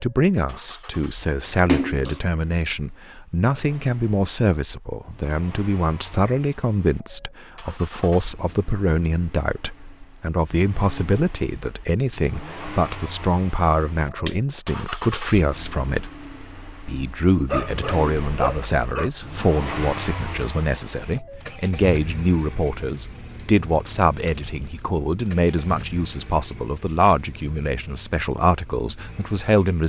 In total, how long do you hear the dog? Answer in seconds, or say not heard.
2 s.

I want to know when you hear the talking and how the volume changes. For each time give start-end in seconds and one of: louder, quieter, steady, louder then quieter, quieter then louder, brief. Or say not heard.
0.0-16.1 steady
16.9-29.8 steady.